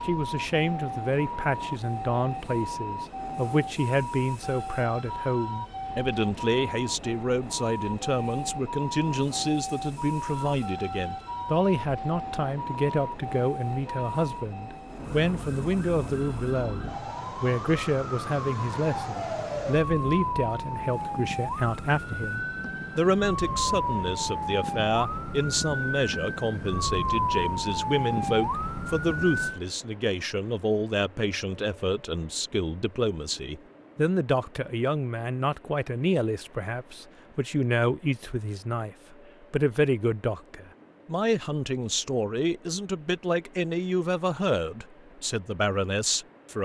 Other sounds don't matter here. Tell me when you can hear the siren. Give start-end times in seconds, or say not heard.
0.0-29.6.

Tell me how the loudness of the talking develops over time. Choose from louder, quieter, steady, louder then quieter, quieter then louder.
steady.